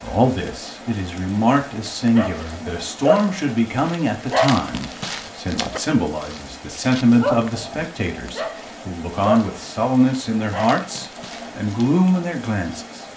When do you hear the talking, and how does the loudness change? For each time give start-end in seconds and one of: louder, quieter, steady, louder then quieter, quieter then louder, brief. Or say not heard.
0.0-13.1 steady.